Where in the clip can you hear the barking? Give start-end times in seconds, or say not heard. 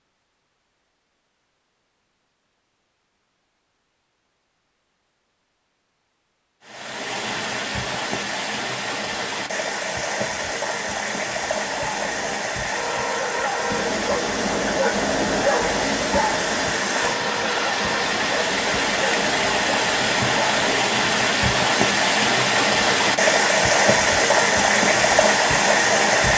11.6-20.6.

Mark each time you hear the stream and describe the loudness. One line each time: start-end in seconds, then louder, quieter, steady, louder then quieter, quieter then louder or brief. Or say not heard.
6.6-26.3 louder.